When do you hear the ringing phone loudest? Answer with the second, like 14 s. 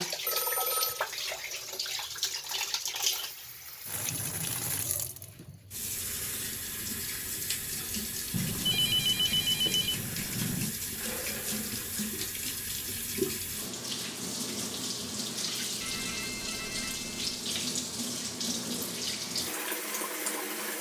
9 s.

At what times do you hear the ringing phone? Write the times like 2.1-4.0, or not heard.
0.2-1.1, 8.3-10.8, 15.8-17.4.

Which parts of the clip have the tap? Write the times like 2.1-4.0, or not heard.
0.0-20.7.